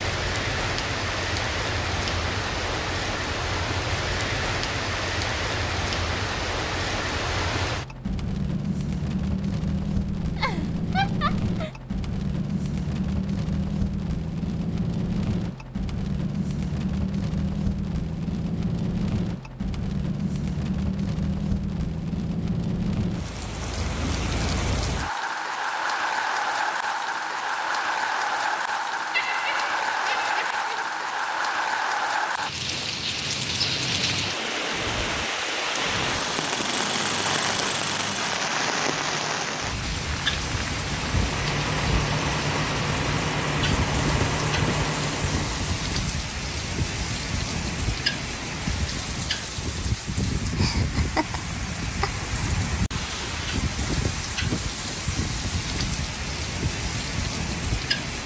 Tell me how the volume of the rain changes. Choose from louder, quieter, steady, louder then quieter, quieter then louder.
steady.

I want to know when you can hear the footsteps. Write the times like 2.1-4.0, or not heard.
not heard.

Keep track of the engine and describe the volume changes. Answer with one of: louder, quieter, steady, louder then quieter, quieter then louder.
quieter then louder.